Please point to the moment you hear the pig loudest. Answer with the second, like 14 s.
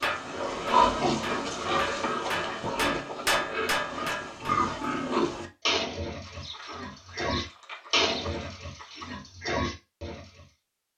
1 s.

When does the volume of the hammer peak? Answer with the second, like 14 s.
3 s.